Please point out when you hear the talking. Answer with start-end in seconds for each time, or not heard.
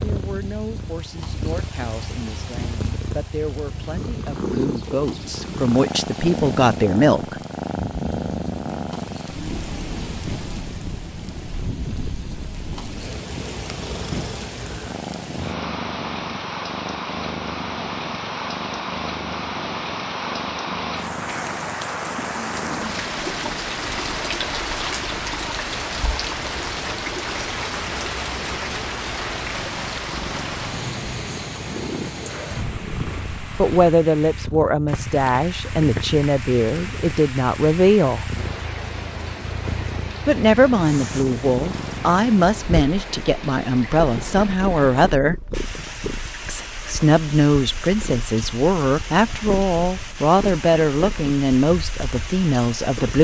0.0-7.3, 33.5-38.2, 40.2-45.4, 46.5-53.1.